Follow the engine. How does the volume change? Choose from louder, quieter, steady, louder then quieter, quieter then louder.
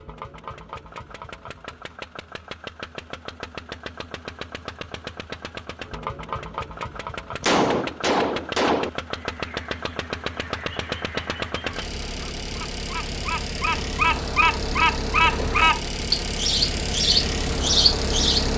louder.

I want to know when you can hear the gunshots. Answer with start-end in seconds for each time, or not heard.
7.4-8.9.